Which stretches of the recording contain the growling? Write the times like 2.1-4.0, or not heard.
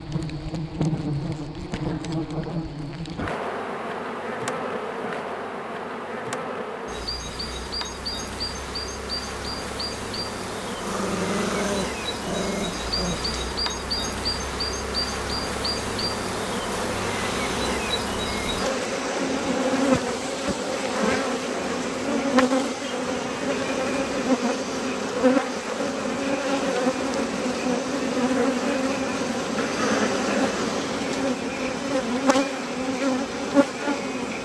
10.8-13.3, 29.6-30.7.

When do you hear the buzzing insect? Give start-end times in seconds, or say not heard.
0.0-34.4.